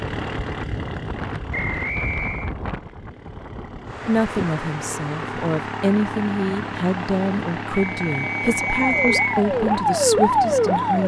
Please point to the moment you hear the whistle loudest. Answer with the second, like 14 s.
9 s.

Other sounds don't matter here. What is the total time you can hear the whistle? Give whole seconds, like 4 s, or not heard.
3 s.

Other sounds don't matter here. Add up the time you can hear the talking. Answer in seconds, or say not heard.
7 s.